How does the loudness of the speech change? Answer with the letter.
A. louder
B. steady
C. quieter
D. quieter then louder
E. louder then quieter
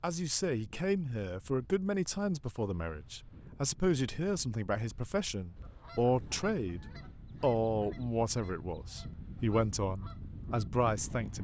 B.